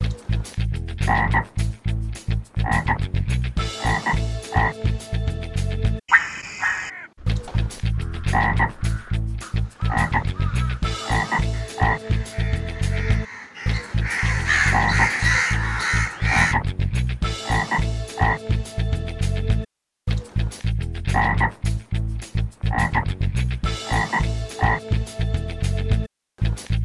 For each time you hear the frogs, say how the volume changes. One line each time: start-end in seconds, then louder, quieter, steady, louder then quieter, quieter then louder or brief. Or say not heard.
0.0-26.8 steady.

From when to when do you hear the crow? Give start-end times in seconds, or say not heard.
6.8-16.6.